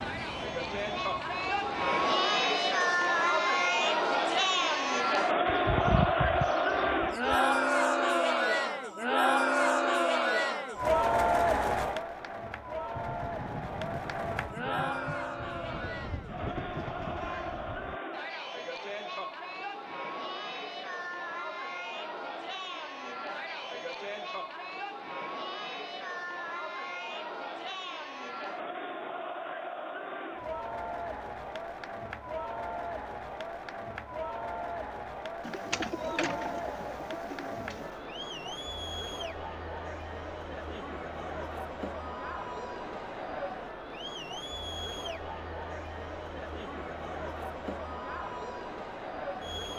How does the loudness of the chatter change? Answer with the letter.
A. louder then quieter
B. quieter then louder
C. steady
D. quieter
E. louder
D.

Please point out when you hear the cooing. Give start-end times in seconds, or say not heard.
5.5-7.5, 35.4-37.9.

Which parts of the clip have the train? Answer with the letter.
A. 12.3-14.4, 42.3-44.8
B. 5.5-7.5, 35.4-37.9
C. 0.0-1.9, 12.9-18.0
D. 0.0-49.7
C.